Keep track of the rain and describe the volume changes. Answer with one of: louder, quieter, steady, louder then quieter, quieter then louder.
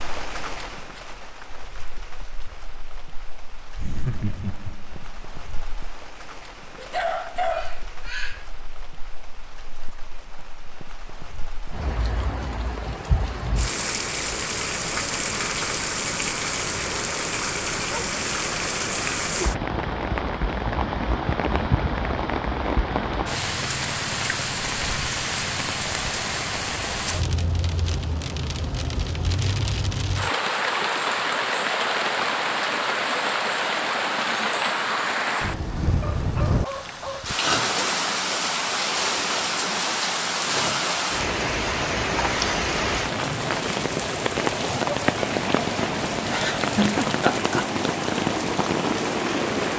louder.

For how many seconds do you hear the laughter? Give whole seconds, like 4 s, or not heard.
3 s.